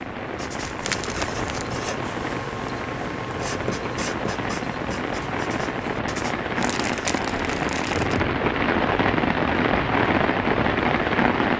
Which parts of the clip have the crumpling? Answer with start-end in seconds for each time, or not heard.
0.6-1.8, 6.6-8.2.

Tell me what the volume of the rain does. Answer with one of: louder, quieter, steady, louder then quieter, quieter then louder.
louder.